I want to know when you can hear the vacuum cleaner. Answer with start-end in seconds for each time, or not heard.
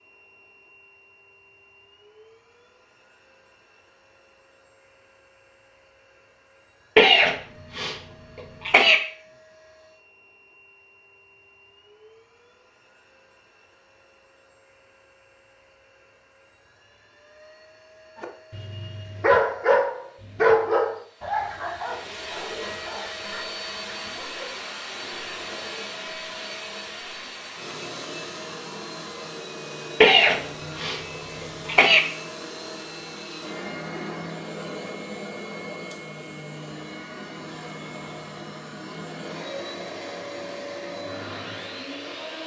0.0-42.4.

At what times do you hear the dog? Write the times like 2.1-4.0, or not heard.
18.1-24.7.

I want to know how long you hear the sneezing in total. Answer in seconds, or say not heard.
4 s.